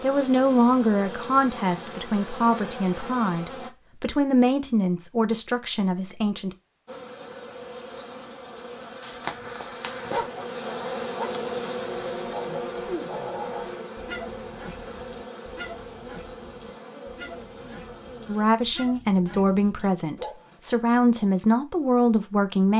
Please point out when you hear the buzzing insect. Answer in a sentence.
You can hear the buzzing insect from 0.0 to 3.7 s and from 6.8 to 18.5 s.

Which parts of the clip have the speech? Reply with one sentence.
You can hear the speech from 0.0 to 6.5 s and from 18.2 to 22.7 s.